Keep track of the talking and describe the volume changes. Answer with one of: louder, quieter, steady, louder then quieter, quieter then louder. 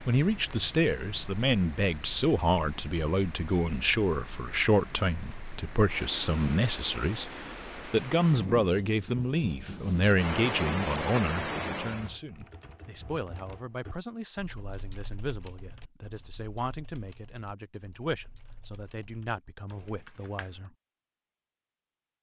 quieter.